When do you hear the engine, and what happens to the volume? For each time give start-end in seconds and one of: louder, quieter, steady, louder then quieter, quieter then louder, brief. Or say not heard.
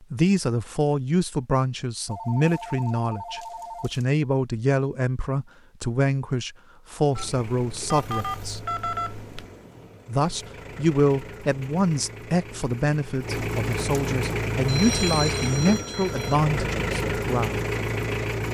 7.1-18.5 louder.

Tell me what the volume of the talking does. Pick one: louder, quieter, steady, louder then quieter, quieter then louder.
steady.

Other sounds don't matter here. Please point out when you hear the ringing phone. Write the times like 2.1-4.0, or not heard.
2.0-4.0, 7.2-9.4, 14.7-16.4.